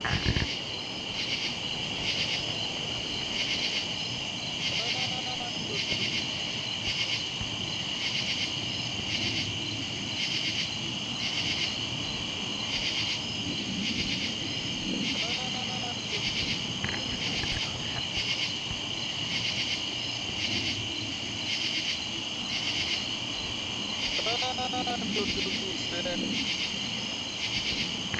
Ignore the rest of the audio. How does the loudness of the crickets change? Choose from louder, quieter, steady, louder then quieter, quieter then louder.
steady.